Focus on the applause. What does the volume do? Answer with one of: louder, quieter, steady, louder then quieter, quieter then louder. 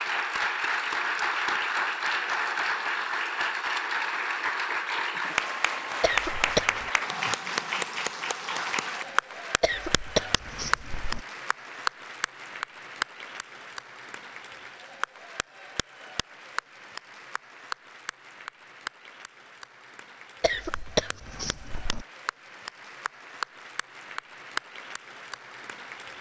quieter.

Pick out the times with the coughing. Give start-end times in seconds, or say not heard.
6.0-6.9, 9.6-11.2, 20.4-22.1.